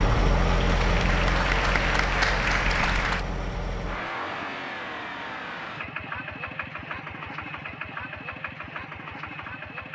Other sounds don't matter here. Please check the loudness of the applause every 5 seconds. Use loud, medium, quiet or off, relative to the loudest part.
loud, off.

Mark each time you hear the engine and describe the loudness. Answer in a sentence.
The engine can be heard from 0.0 to 9.9 s, getting quieter.